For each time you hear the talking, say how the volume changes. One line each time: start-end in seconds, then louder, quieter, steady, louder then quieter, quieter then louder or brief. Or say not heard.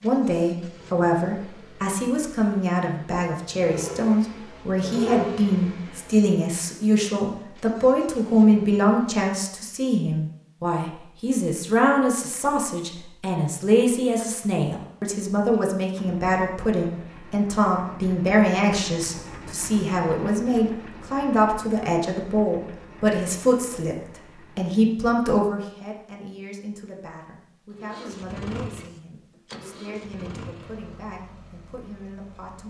0.0-23.9 steady
24.6-32.6 quieter.